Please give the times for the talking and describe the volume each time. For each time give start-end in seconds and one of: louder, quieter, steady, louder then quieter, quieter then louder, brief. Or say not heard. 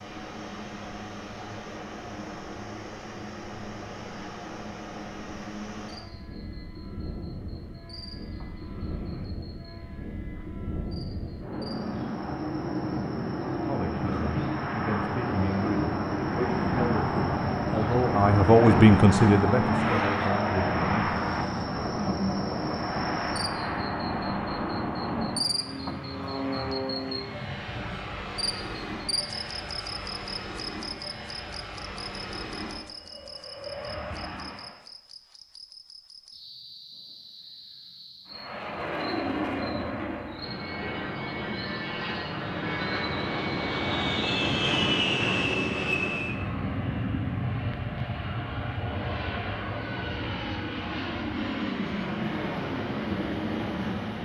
13.7-21.1 louder then quieter.